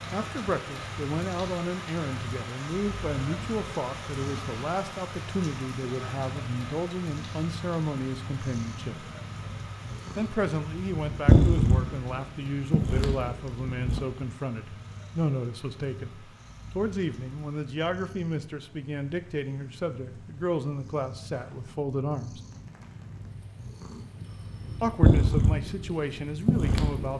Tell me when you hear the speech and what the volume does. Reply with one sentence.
You can hear the speech from 0.1 to 9.1 s, at a steady volume; from 10.2 to 22.4 s, at a steady volume; and briefly from 24.8 to 27.1 s.